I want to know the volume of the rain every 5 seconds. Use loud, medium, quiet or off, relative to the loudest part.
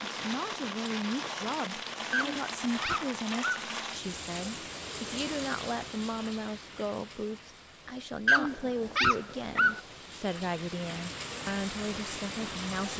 loud, medium, loud.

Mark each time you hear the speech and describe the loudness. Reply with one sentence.
The speech can be heard from 0.1 to 12.9 s, at a steady volume.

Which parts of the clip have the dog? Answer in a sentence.
The dog can be heard from 2.1 to 3.6 s and from 8.2 to 9.8 s.